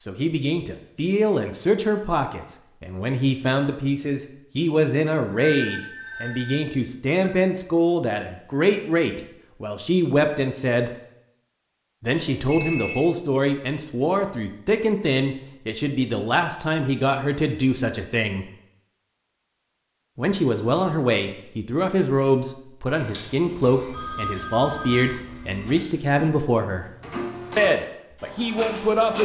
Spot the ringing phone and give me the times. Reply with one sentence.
You can hear the ringing phone from 5.3 to 7.3 s, from 12.2 to 13.1 s and from 23.9 to 25.3 s.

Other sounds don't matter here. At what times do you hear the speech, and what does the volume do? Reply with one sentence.
The speech can be heard from 0.0 to 10.9 s, at a steady volume; from 12.0 to 18.4 s, at a steady volume; from 20.1 to 26.9 s, at a steady volume; and briefly from 27.6 to 29.2 s.